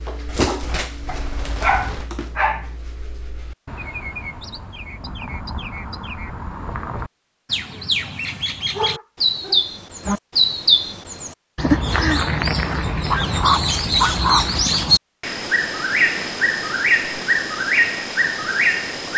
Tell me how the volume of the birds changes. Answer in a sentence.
The loudness of the birds goes up.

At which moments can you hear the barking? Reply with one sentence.
The barking can be heard from 1.1 to 2.6 s, from 8.8 to 10.2 s and from 13.1 to 14.6 s.